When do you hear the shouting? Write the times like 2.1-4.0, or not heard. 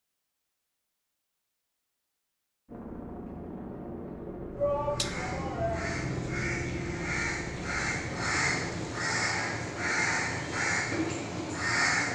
4.5-6.0.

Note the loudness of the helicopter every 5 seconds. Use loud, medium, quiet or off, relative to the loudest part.
loud, loud, off.